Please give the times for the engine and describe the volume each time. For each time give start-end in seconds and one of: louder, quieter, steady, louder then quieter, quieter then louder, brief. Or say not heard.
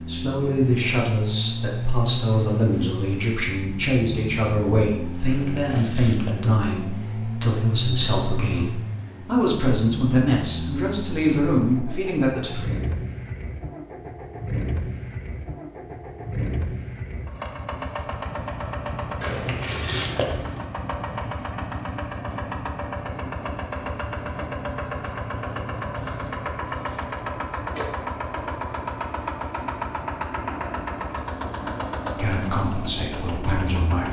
0.0-34.0 steady.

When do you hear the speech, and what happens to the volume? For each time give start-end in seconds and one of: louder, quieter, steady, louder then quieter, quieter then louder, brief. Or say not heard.
0.0-12.7 steady
32.1-34.0 brief.